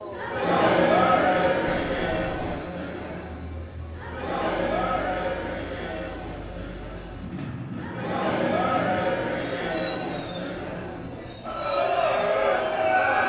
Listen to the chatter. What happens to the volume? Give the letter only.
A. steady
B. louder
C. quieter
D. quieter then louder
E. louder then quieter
D.